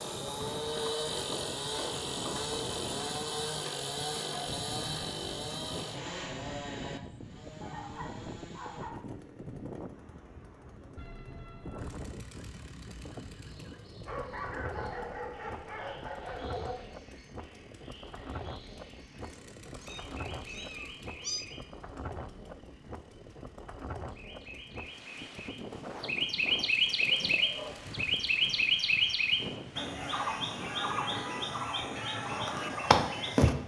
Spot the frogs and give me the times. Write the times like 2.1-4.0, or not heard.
not heard.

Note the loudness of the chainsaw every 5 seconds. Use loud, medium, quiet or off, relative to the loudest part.
loud, medium, quiet, quiet, quiet, quiet, off.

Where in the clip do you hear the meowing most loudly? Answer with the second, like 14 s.
21 s.